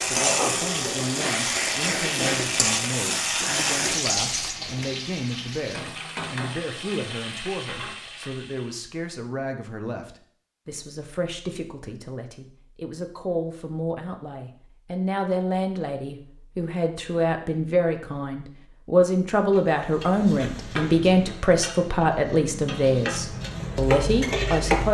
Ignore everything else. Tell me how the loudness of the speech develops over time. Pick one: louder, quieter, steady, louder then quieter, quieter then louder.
louder.